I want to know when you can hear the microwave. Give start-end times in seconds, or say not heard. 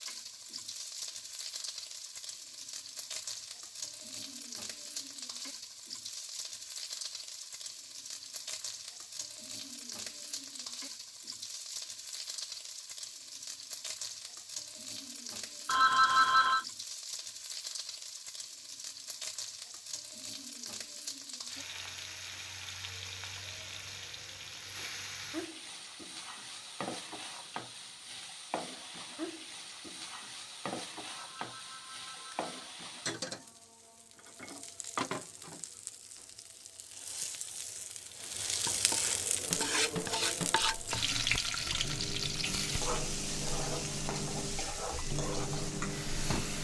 39.5-46.5.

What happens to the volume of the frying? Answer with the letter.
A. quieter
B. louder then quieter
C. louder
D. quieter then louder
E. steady
C.